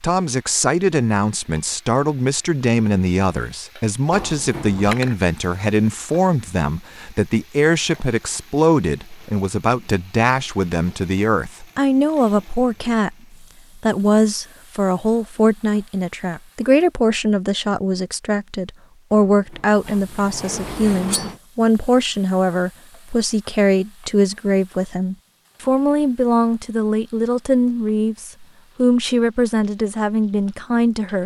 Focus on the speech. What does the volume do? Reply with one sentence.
The volume of the speech stays about the same.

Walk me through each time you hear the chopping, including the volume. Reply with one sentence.
The chopping can't be heard in this clip.